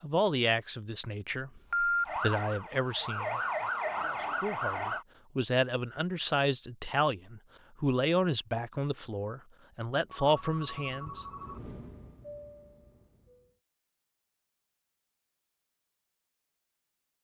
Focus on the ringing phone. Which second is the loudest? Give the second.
2 s.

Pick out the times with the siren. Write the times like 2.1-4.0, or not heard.
2.0-5.0.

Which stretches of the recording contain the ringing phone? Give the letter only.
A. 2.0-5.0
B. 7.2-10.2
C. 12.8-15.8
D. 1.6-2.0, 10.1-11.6
D.